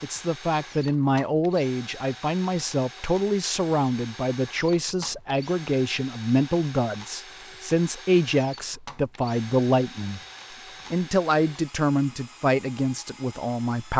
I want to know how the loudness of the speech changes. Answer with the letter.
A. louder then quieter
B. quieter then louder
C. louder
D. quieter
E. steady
E.